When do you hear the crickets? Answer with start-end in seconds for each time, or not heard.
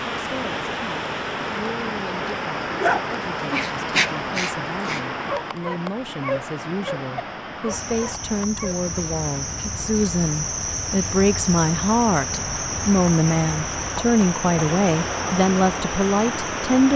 7.7-16.9.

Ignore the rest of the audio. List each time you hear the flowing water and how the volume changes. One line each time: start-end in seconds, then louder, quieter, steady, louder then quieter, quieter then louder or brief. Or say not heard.
0.0-16.9 quieter then louder.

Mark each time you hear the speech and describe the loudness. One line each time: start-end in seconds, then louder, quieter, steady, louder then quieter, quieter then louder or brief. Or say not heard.
0.1-16.9 louder.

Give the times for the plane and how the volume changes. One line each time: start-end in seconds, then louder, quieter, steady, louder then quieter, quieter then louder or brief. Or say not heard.
not heard.